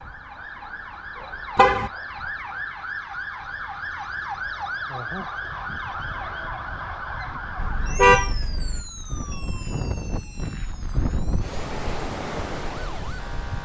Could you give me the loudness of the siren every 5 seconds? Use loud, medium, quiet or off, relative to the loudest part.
loud, loud, medium.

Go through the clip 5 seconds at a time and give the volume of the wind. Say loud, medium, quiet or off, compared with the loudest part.
off, medium, loud.